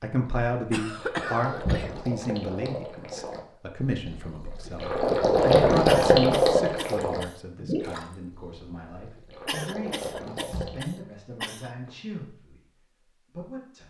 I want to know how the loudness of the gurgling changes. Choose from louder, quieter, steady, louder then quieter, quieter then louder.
louder then quieter.